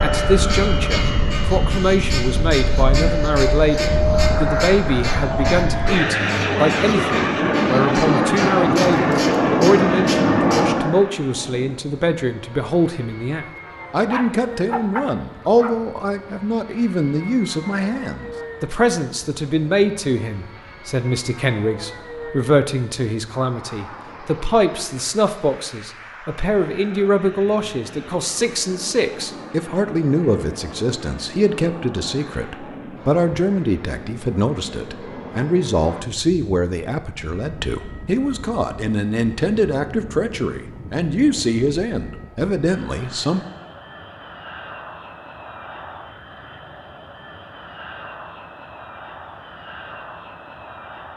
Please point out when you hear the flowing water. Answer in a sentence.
The flowing water can't be heard in this clip.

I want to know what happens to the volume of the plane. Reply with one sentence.
The volume of the plane goes down.